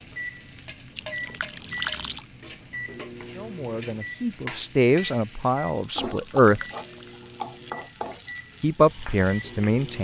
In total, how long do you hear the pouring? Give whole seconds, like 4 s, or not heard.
2 s.